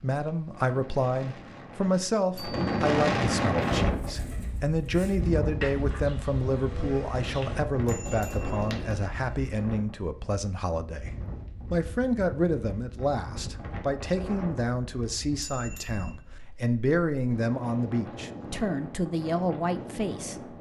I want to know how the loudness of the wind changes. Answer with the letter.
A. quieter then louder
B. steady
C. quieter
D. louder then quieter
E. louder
C.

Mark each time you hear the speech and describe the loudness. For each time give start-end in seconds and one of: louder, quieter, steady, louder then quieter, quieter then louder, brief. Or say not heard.
0.0-20.5 steady.